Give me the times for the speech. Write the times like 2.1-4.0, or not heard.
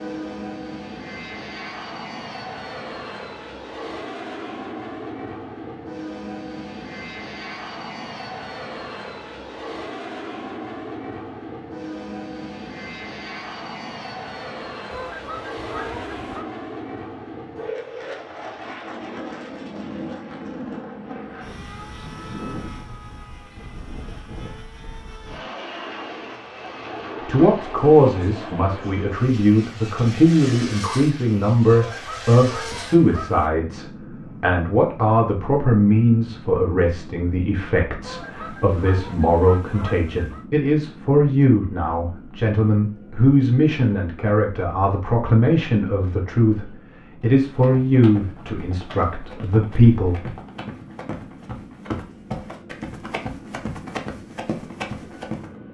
27.2-50.3.